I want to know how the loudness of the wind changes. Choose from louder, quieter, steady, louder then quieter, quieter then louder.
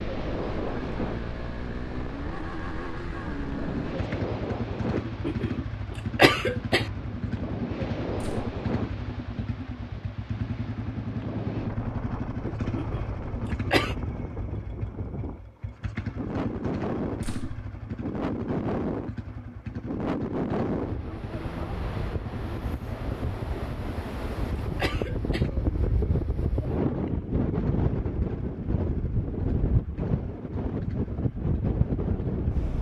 louder.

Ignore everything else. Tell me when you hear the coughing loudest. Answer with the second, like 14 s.
6 s.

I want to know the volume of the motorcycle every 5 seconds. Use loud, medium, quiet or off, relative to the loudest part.
loud, loud, loud, loud, medium, medium, medium.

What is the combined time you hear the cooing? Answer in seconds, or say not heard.
not heard.